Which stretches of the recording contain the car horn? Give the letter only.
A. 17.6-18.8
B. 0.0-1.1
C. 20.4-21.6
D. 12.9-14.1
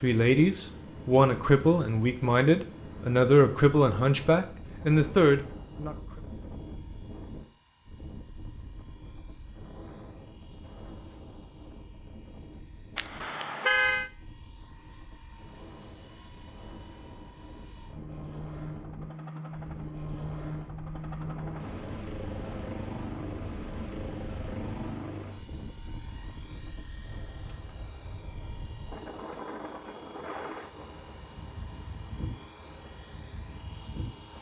D.